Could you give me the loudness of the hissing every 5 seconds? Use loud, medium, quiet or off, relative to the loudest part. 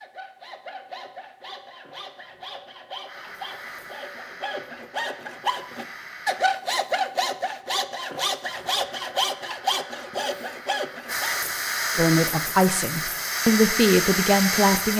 quiet, quiet, loud.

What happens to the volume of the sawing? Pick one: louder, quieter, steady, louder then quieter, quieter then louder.
louder.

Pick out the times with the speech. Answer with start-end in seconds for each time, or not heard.
11.9-14.9.